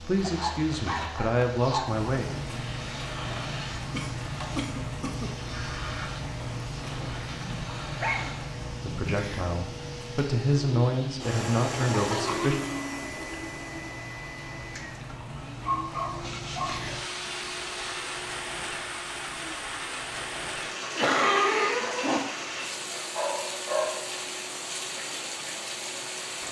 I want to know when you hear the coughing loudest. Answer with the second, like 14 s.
21 s.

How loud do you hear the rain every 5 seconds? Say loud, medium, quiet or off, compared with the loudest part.
loud, loud, medium, loud, loud, loud.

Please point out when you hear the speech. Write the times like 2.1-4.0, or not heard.
0.0-2.3, 8.8-12.6.